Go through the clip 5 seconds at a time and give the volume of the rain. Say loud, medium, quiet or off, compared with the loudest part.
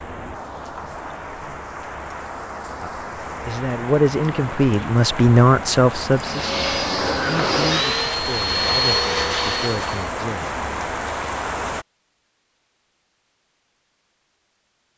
medium, loud, loud.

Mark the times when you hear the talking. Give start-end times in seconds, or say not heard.
2.8-10.5.